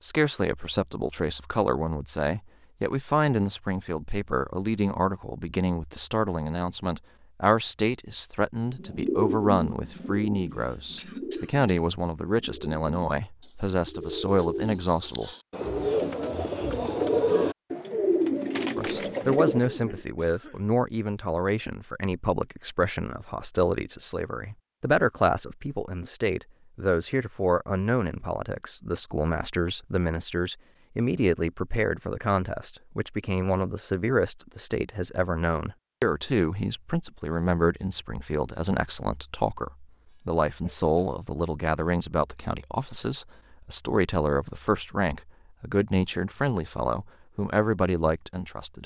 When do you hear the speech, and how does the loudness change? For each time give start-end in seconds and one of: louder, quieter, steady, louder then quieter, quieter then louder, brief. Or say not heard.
0.0-15.3 steady
18.8-48.8 steady.